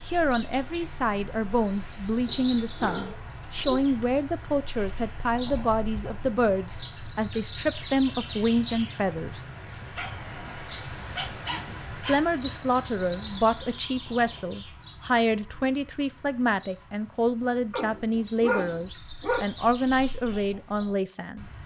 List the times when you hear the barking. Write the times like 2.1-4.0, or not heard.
2.2-3.8, 9.7-12.2, 17.7-19.4.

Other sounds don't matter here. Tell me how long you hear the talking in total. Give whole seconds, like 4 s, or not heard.
19 s.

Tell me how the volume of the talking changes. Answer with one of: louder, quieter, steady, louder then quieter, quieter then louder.
steady.